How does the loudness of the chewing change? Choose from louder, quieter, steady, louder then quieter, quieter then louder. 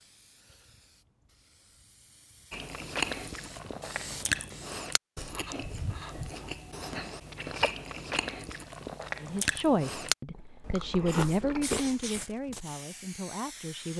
quieter then louder.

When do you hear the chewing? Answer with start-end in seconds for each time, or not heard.
2.5-11.9.